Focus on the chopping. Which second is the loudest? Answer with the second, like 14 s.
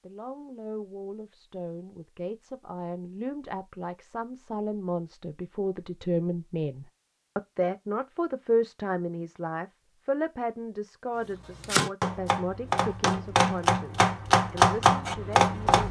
15 s.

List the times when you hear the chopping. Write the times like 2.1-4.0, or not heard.
11.3-15.8.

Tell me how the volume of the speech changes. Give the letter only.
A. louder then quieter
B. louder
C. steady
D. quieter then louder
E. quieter
A.